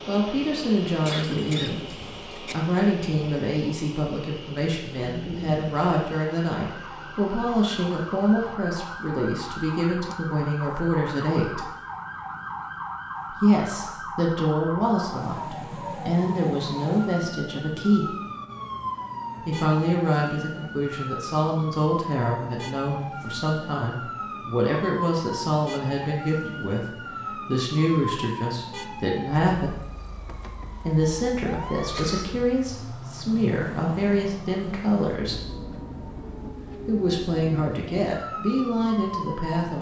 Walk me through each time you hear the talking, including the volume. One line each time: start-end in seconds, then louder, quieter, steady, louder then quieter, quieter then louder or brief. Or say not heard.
0.1-11.7 steady
13.3-18.1 quieter then louder
19.4-29.9 steady
30.8-35.4 steady
36.9-39.7 brief.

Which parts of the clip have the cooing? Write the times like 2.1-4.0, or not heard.
not heard.